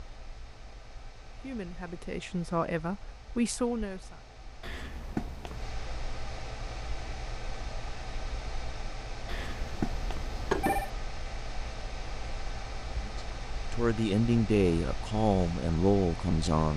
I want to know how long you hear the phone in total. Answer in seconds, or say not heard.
3 s.